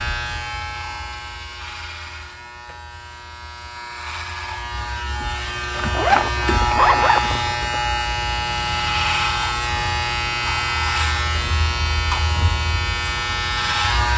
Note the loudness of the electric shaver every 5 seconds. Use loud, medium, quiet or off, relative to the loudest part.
medium, loud, loud.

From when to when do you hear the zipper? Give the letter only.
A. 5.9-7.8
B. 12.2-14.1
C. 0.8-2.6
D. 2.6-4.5
A.